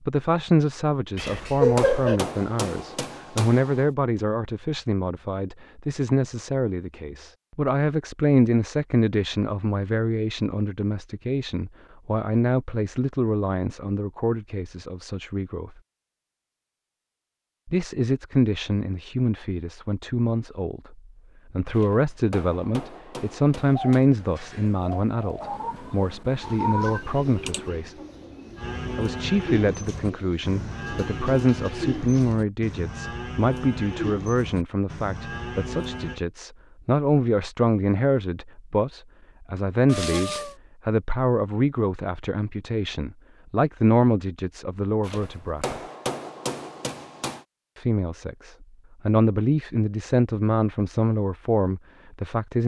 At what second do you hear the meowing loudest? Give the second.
2 s.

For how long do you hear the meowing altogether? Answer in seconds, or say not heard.
4 s.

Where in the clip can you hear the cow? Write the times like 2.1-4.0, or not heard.
28.6-36.2.